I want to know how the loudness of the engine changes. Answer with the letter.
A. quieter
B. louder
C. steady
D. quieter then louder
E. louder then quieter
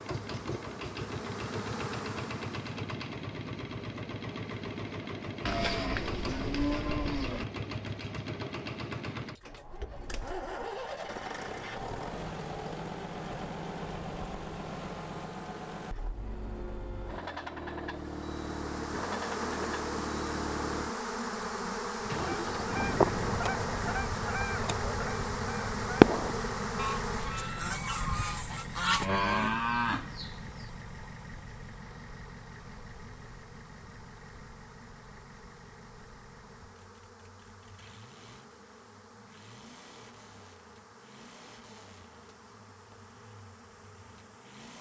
A.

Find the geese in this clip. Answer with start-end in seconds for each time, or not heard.
22.1-29.1.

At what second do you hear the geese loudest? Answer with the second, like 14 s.
26 s.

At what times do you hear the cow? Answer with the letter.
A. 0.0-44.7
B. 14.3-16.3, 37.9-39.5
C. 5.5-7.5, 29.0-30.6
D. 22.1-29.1
C.